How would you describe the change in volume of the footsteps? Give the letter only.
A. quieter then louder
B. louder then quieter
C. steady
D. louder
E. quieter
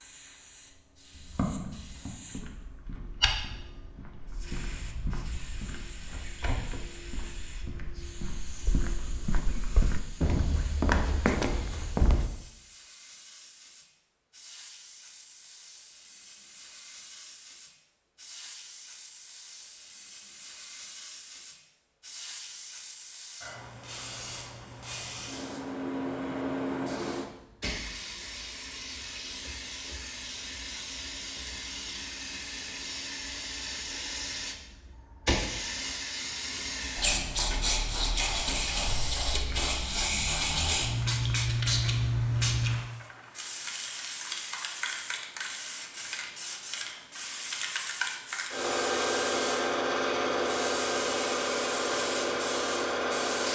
A.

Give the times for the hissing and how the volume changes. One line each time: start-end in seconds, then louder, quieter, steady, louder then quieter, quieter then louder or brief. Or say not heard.
0.0-53.5 louder.